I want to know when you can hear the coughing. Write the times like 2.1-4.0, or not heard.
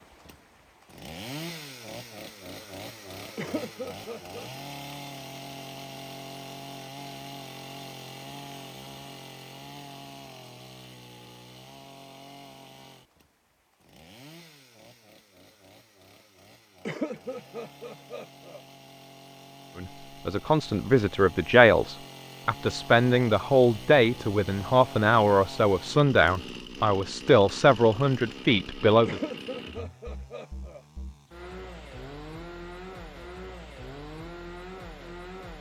3.4-4.5, 16.9-18.6, 29.1-30.8.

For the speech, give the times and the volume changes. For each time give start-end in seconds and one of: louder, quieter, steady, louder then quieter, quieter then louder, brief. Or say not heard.
19.8-29.2 steady.